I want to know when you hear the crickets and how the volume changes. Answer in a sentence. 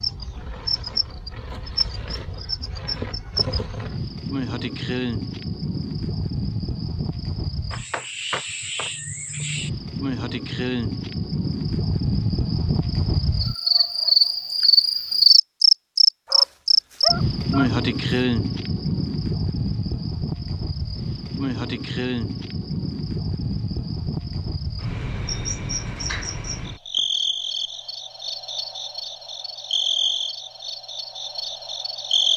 You can hear the crickets from 0.0 to 32.3 s, getting louder then quieter.